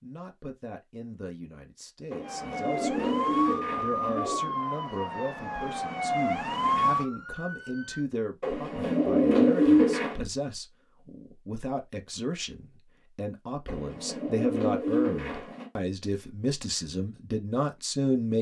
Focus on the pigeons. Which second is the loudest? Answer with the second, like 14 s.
10 s.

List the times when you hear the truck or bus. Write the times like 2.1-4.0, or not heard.
not heard.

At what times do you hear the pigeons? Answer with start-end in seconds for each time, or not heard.
2.1-4.5, 8.4-10.2, 13.7-15.7.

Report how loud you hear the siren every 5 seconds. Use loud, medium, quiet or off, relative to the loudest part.
loud, loud, off, off.